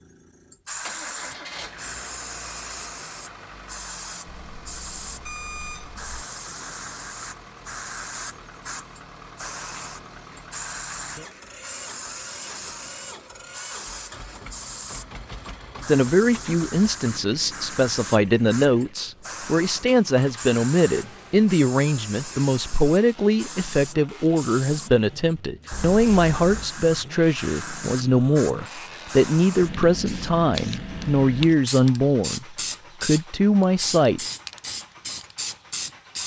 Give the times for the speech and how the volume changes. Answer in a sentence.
You can hear the speech from 15.8 to 34.2 s, at a steady volume.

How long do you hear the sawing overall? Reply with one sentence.
You can't hear the sawing here.